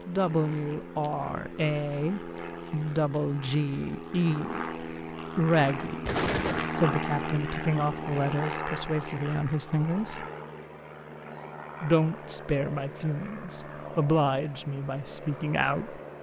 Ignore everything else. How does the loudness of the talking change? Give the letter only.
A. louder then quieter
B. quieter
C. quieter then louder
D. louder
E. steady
E.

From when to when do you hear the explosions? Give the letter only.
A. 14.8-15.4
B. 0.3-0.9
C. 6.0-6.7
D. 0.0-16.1
C.